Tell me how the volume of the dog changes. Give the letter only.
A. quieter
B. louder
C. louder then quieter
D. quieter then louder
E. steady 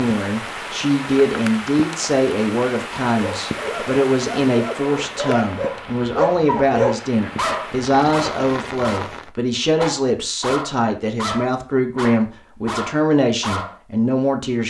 C.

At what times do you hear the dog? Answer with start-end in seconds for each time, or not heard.
3.1-13.8.